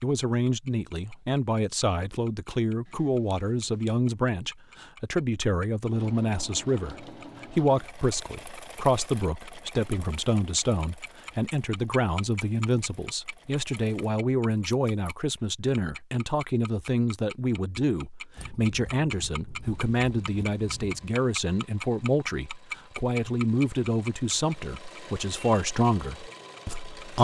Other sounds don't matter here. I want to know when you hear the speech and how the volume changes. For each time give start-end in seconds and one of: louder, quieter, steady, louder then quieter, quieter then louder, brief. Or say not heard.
0.0-27.2 steady.